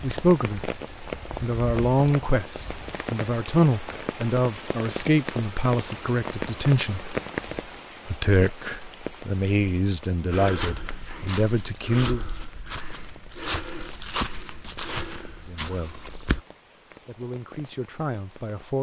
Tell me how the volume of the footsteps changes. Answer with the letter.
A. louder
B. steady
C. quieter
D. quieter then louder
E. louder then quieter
E.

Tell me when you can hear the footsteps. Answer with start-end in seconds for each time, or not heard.
10.3-16.4.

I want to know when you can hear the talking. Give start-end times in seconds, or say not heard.
0.0-0.8, 1.4-7.2, 8.1-12.2, 15.4-16.1, 17.0-18.7.